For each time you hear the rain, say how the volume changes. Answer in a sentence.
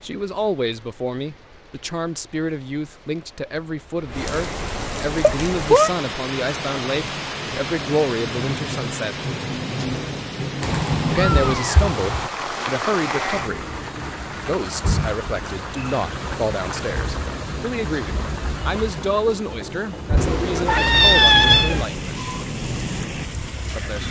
The rain can be heard from 0.0 to 24.0 s, getting louder.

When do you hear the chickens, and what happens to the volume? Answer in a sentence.
You can't hear the chickens here.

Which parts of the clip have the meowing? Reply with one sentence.
The meowing can be heard from 5.2 to 5.9 s, from 10.6 to 12.3 s and from 20.1 to 21.9 s.